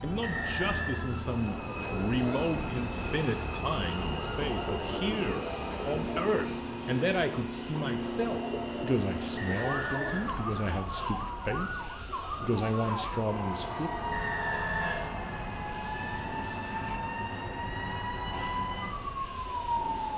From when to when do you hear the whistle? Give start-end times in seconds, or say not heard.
0.2-1.1, 9.3-11.1, 14.1-15.2.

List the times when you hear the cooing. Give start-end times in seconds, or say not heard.
1.4-10.8.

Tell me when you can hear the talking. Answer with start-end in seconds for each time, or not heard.
0.0-14.1.